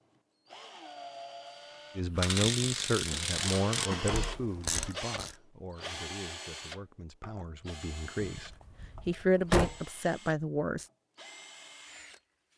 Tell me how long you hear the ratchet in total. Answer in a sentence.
The ratchet can be heard for 3 seconds in total.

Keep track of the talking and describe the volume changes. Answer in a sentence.
The loudness of the talking goes down, then up.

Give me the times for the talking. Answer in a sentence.
You can hear the talking from 1.9 to 10.8 s.